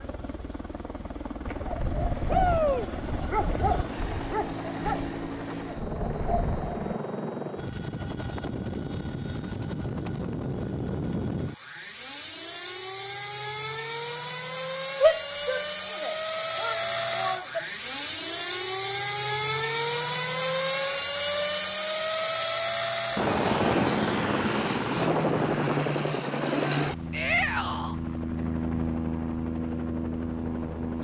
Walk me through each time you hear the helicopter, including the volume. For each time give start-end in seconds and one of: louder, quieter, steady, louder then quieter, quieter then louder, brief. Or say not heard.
0.0-31.0 louder.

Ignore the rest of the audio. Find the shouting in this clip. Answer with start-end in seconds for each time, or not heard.
2.2-2.9, 15.0-17.6, 27.1-27.9.